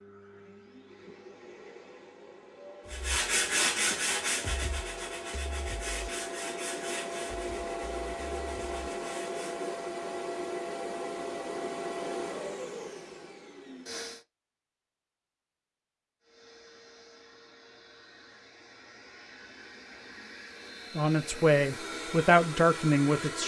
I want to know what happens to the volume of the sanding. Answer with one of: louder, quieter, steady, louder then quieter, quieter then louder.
quieter.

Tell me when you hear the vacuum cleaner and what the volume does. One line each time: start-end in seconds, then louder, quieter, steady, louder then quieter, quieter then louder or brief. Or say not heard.
0.0-14.2 louder
16.2-23.4 louder.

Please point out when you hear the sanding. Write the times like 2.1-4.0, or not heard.
2.9-9.7.